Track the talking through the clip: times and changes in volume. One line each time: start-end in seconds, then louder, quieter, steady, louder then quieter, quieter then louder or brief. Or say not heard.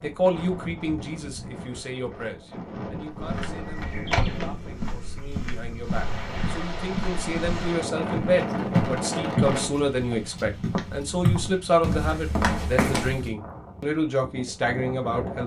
0.0-15.4 quieter then louder.